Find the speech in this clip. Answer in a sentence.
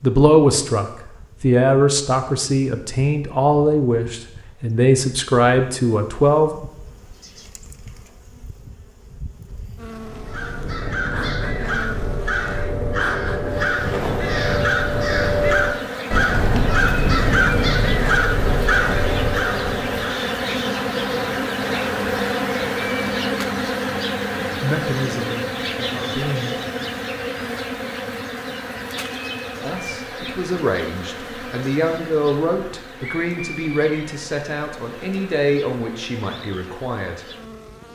The speech can be heard from 0.0 to 6.7 s, from 24.4 to 26.6 s and from 29.6 to 37.2 s.